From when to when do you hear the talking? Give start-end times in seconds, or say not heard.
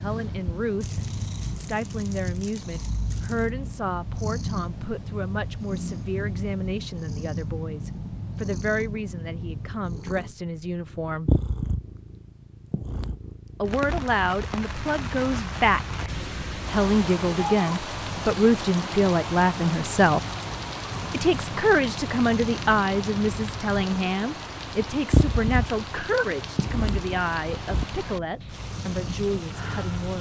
0.0-11.4, 13.6-20.2, 21.1-30.1.